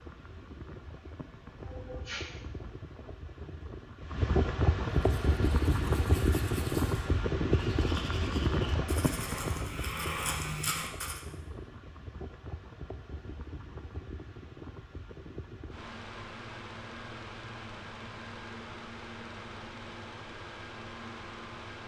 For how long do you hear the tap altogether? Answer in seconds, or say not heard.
not heard.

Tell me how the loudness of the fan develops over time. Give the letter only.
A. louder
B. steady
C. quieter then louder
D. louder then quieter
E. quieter
D.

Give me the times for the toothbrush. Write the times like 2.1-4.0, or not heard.
4.9-11.2.